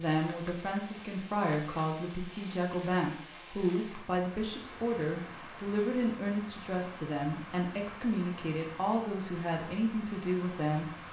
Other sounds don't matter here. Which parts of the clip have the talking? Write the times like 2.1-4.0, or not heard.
0.0-10.9.